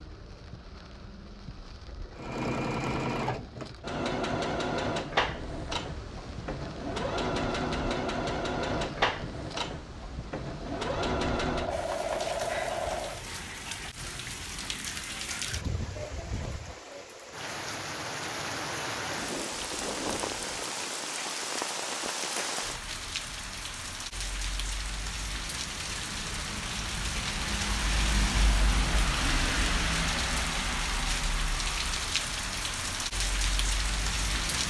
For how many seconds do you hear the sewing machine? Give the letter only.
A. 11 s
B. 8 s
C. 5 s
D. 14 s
A.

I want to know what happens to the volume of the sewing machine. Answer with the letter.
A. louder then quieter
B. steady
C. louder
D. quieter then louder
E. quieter
B.